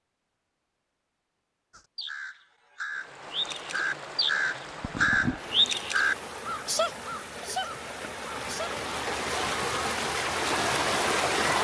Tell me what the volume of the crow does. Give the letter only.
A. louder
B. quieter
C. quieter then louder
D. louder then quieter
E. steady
D.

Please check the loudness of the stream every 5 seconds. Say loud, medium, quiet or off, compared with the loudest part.
quiet, medium, loud.